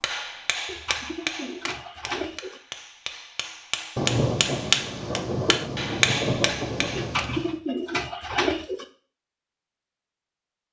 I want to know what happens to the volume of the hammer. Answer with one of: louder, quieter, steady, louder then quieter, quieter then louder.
quieter then louder.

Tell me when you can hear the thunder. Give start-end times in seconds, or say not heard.
4.0-7.5.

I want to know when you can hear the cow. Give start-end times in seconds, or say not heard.
not heard.